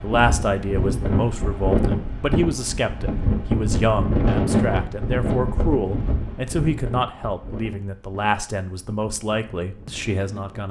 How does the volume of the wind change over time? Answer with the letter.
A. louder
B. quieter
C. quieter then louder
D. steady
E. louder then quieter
B.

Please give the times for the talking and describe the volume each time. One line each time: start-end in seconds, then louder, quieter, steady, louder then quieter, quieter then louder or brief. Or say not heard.
0.0-10.6 steady.